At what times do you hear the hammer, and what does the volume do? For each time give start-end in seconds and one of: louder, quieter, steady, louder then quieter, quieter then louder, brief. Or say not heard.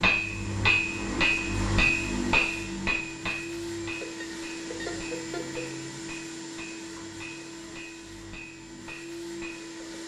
0.0-10.0 quieter.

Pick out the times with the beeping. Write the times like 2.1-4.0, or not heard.
4.0-5.7.